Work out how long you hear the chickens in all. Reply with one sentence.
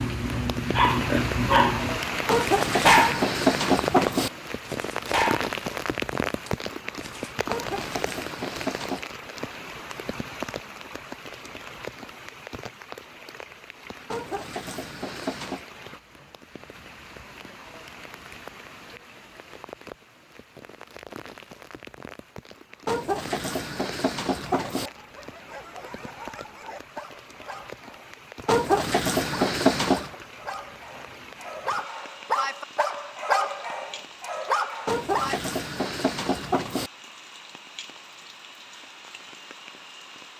The chickens can be heard for 11 seconds in total.